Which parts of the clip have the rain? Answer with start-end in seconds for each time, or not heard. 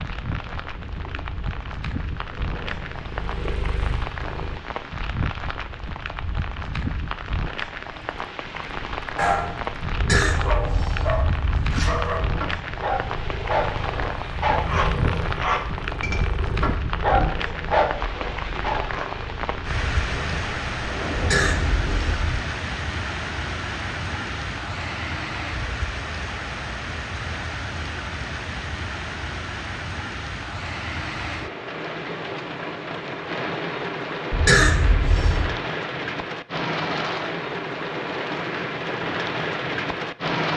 0.0-40.5.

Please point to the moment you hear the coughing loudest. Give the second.
35 s.